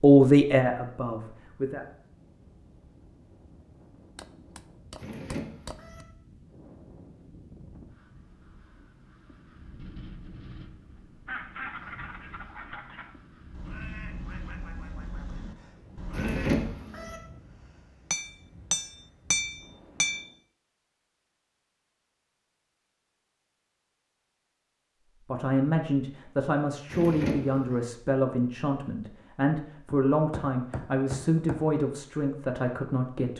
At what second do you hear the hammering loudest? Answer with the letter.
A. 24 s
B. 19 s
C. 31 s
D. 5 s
B.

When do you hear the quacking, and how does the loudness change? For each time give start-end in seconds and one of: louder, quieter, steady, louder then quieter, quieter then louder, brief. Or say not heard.
11.2-16.7 steady.